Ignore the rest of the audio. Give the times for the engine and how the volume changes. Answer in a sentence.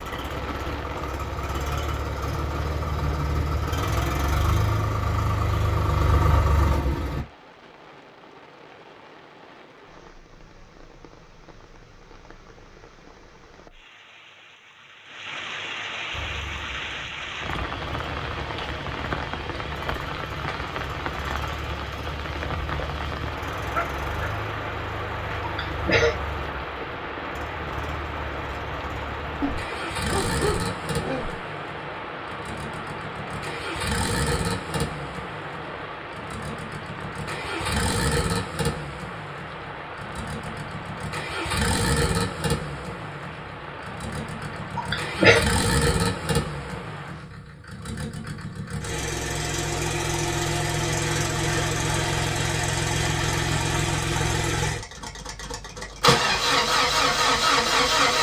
The engine can be heard from 0.0 to 7.2 s, getting louder; and from 16.1 to 58.1 s, getting louder.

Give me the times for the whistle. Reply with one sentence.
The whistle can't be heard in this clip.